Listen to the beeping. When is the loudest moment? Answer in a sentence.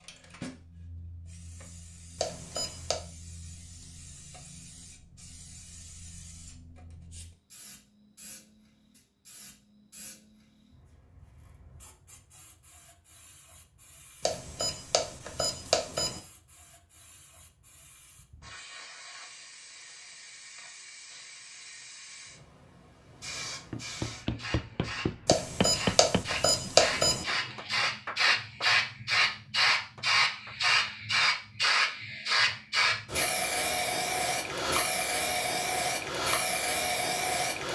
The loudest moment of the beeping is at 27 seconds.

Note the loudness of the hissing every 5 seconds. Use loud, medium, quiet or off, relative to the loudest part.
quiet, quiet, quiet, quiet, quiet, loud, loud, loud.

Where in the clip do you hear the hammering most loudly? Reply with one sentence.
The loudest moment of the hammering is at 26 seconds.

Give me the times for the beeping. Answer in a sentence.
You can hear the beeping from 2.1 to 3.0 s, from 14.2 to 16.2 s and from 25.2 to 27.2 s.